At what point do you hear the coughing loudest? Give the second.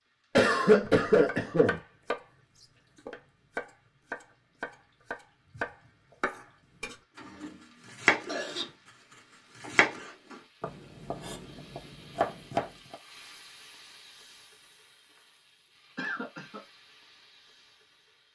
1 s.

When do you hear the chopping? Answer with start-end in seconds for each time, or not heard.
0.8-7.0, 7.9-8.7, 9.6-12.9.